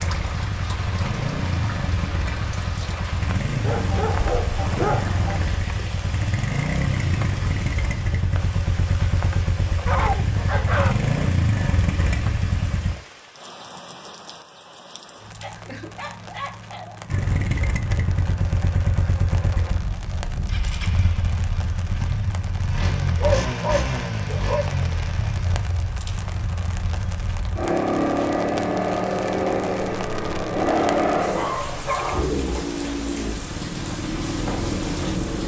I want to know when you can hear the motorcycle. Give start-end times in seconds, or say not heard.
0.0-12.9, 17.1-35.4.